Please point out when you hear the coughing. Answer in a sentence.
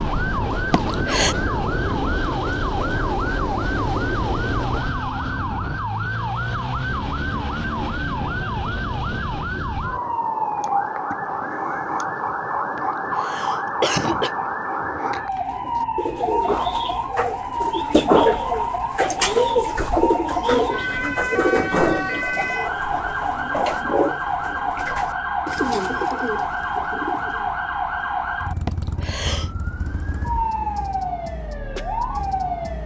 You can hear the coughing from 0.7 to 1.4 s, from 12.8 to 14.3 s and from 28.6 to 29.5 s.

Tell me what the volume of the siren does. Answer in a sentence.
The volume of the siren stays about the same.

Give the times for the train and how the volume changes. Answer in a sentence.
The train can be heard from 0.0 to 5.0 s, at a steady volume.